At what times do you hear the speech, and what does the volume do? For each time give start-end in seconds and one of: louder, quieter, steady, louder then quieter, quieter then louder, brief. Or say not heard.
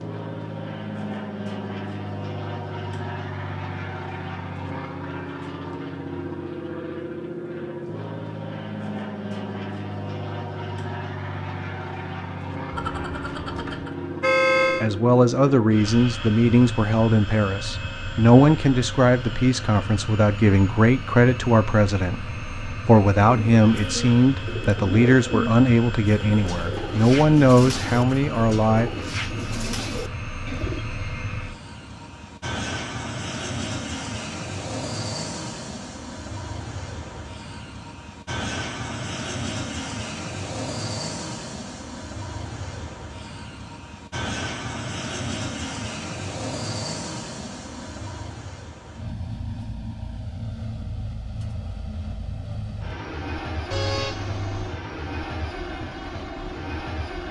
14.8-28.9 steady.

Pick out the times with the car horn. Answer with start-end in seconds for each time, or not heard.
12.7-14.9, 53.7-54.8.